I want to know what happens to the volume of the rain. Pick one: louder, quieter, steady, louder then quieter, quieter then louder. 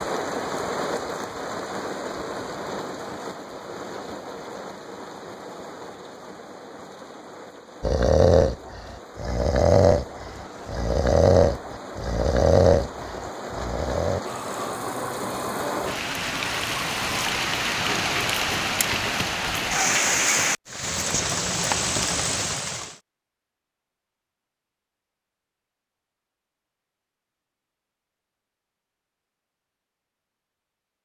quieter then louder.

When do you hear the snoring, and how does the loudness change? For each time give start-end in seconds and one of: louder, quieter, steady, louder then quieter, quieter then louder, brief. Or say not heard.
7.8-17.3 quieter.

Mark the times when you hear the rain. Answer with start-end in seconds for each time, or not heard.
0.0-23.0.